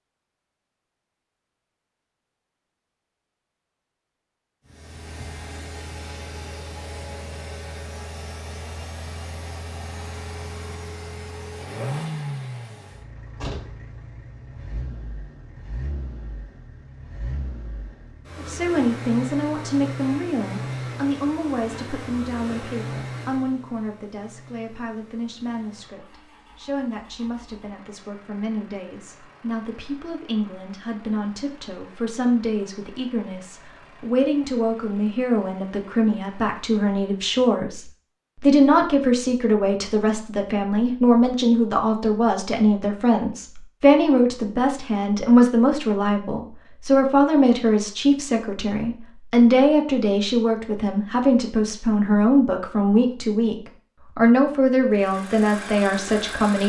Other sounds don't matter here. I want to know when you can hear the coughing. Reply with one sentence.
The coughing can't be heard in this clip.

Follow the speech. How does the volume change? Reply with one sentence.
The volume of the speech goes up.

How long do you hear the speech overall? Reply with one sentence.
The speech can be heard for 38 seconds in total.